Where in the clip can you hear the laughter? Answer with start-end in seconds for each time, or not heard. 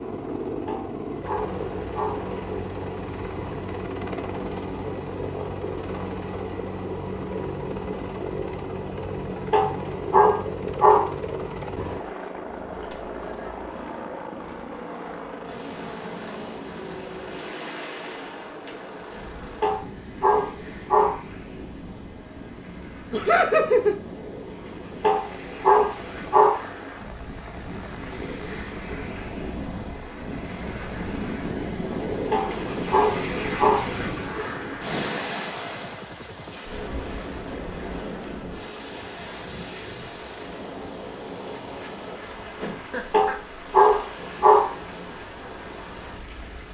12.4-13.5, 23.1-23.9, 42.5-43.4.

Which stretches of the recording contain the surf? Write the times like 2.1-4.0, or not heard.
15.4-46.6.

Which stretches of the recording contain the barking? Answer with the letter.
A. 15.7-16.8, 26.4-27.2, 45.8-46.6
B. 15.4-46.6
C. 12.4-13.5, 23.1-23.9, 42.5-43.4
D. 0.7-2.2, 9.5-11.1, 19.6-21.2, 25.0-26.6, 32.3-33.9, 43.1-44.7
D.